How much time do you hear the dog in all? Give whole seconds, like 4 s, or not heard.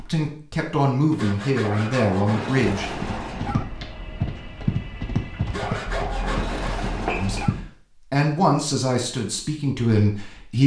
4 s.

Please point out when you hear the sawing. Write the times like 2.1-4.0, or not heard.
1.1-2.5, 5.5-6.8.